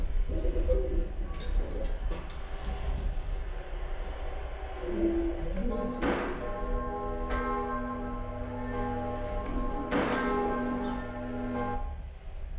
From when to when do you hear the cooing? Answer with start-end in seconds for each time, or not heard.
0.2-1.9, 4.8-6.4, 9.4-11.1.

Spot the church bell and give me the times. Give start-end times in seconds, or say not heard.
5.7-11.8.